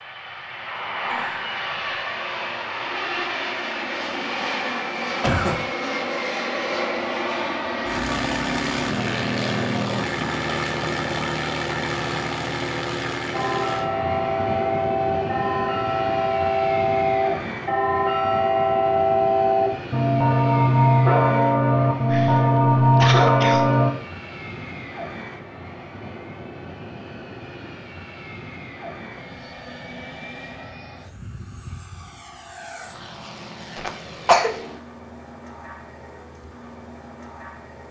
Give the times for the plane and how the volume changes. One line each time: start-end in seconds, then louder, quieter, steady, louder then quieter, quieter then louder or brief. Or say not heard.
0.0-37.8 quieter.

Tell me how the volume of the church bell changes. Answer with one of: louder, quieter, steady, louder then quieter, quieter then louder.
louder.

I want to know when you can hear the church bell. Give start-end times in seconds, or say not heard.
13.3-23.9.